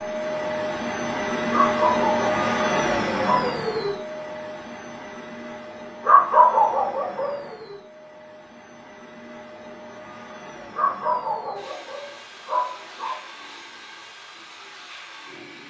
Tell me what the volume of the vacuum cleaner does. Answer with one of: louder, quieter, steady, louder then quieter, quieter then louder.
quieter.